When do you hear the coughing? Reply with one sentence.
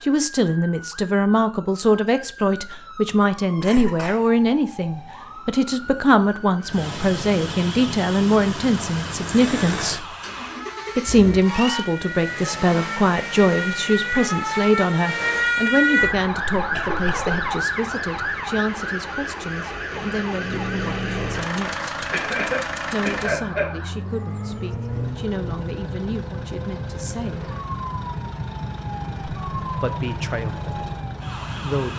You can hear the coughing from 3.6 to 4.2 s, from 16.6 to 17.5 s and from 22.1 to 23.7 s.